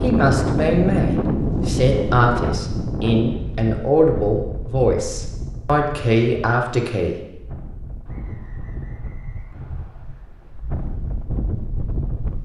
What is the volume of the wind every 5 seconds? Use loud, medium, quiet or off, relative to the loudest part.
loud, quiet, medium.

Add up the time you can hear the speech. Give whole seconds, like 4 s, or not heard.
7 s.